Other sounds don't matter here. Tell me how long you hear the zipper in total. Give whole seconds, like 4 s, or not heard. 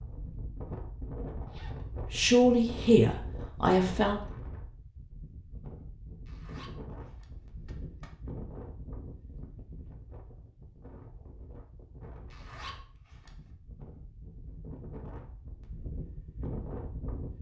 3 s.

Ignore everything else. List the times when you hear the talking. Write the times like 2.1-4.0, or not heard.
2.1-4.2.